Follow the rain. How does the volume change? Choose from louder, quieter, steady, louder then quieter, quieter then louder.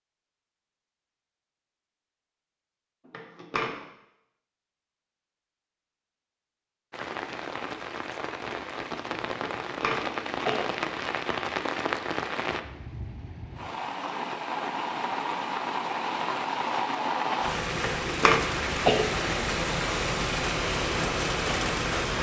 louder.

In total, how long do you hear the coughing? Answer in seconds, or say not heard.
3 s.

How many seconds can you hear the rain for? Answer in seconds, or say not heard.
15 s.